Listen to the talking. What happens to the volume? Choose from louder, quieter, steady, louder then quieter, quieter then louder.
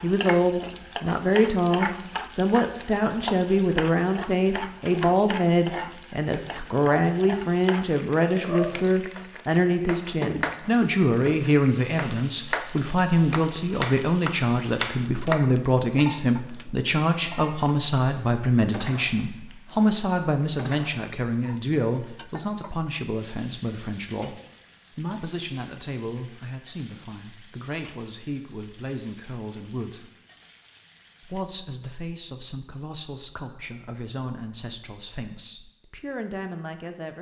quieter.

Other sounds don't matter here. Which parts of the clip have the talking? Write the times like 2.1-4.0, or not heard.
0.0-30.1, 31.2-37.1.